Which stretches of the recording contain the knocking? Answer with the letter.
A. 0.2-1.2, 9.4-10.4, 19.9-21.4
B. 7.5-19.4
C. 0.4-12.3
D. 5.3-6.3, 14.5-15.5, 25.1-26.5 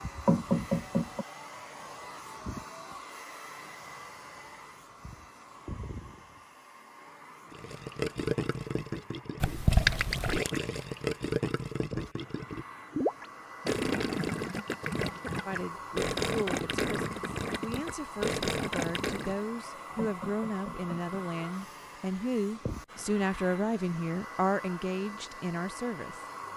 A.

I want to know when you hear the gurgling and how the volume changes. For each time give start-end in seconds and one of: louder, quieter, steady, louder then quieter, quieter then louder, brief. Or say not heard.
7.5-19.4 steady.